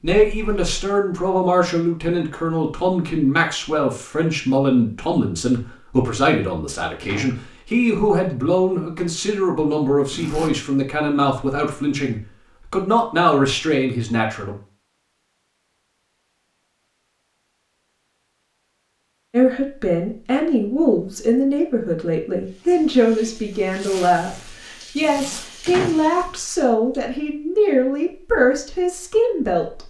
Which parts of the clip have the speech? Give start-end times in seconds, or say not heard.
0.0-14.6, 19.3-29.8.